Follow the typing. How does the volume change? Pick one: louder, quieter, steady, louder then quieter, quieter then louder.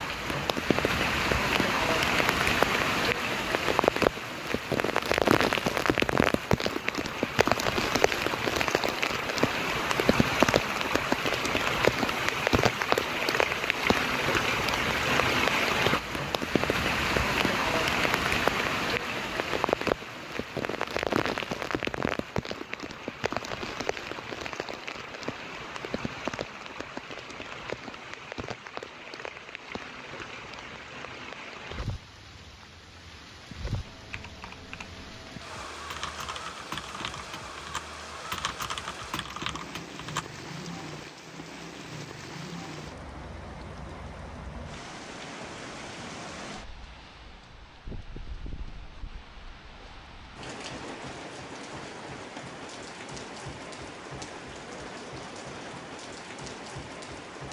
louder.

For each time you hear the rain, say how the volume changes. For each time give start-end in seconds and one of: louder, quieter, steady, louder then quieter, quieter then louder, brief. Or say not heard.
0.0-57.4 quieter.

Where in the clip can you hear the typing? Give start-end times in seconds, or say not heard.
33.8-40.7.